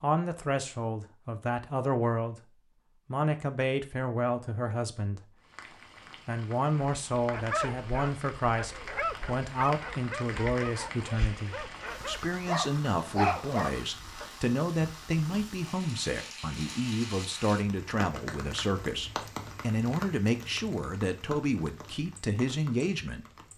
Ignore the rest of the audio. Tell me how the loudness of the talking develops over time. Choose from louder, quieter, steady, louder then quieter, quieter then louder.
steady.